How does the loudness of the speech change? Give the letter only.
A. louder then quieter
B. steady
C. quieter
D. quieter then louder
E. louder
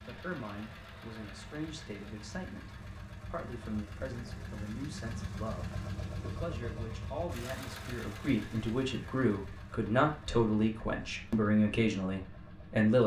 E.